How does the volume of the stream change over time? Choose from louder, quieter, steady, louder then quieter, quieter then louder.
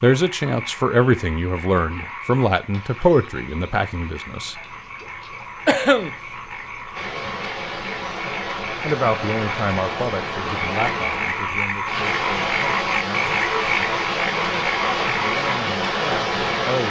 louder.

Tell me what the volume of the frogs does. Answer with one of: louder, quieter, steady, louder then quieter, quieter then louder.
louder.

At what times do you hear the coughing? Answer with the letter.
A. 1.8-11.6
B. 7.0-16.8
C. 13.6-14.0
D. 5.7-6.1
D.